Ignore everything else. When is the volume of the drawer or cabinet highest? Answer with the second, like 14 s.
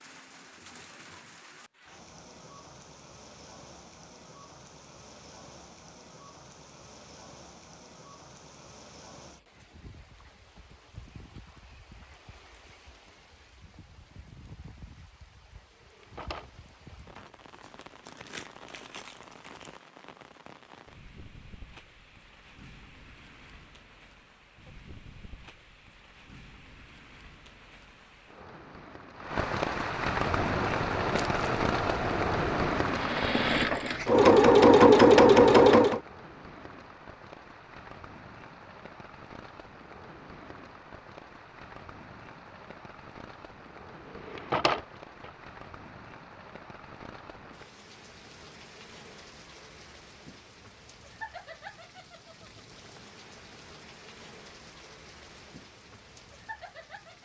45 s.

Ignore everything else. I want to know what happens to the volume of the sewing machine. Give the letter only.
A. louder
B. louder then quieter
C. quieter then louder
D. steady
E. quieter
A.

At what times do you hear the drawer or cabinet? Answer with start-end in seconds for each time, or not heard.
15.8-16.9, 44.1-45.3.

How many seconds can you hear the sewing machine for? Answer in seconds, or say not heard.
6 s.